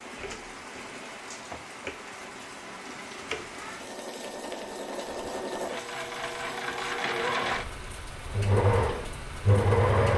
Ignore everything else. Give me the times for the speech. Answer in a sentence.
You can't hear the speech here.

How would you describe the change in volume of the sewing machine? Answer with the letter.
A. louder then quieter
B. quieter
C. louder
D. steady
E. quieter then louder
C.